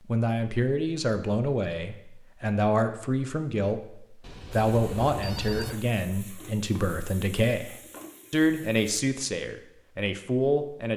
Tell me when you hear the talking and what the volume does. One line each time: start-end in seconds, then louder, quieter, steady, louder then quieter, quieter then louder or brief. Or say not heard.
0.1-10.9 steady.